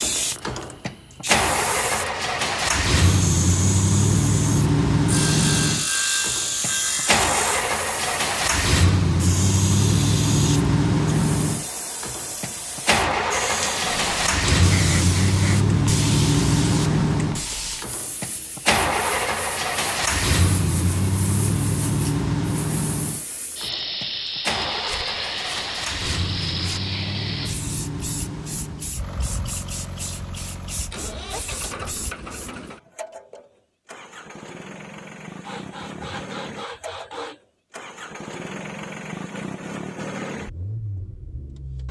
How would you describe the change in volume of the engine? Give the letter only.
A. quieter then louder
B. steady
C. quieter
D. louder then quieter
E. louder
C.